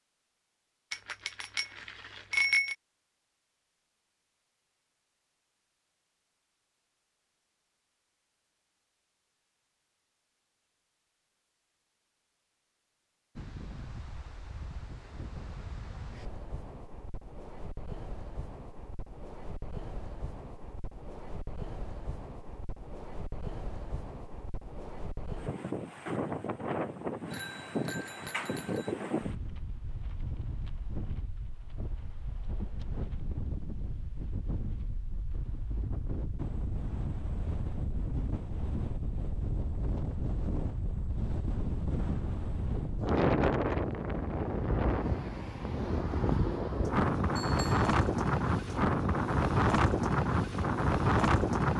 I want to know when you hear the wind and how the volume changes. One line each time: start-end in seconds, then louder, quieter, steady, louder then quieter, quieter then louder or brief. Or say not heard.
13.3-51.7 louder.